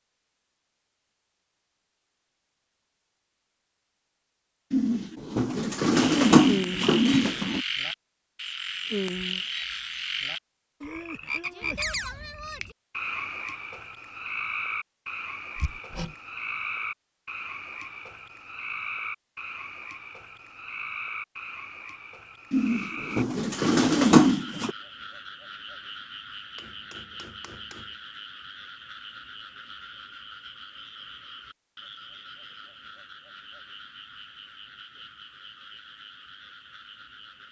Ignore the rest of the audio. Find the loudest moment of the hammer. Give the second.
16 s.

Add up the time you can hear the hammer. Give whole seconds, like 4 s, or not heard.
2 s.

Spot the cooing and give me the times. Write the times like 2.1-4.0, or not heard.
4.7-7.7, 22.5-24.7.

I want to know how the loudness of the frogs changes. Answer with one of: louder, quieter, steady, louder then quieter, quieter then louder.
quieter.